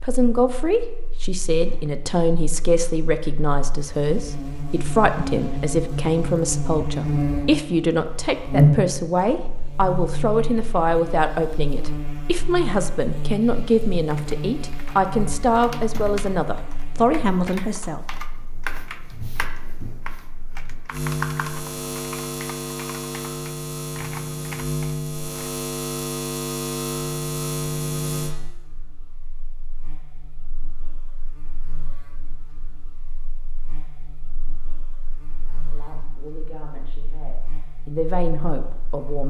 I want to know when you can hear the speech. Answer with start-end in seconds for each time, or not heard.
0.0-18.0, 35.4-39.2.